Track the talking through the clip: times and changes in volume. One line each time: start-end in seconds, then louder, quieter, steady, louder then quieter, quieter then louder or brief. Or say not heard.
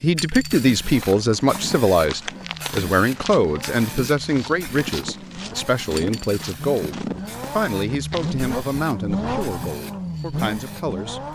0.0-11.3 quieter.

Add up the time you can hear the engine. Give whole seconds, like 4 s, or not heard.
11 s.